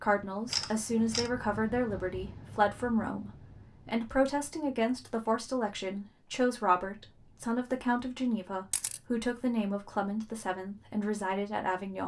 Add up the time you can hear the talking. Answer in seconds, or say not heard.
12 s.